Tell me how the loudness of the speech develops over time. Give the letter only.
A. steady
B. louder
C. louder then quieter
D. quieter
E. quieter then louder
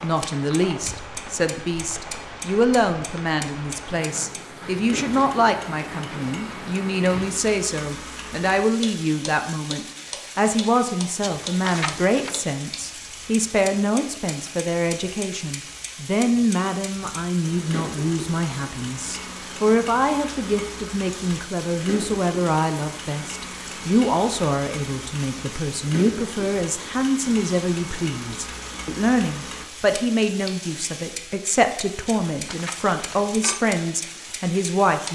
A.